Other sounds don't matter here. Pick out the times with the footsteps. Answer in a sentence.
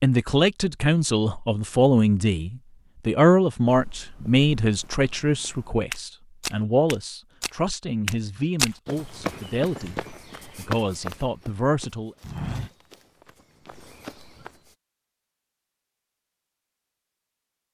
You can hear the footsteps from 3.6 to 14.7 s.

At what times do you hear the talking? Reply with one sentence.
The talking can be heard from 0.0 to 12.2 s.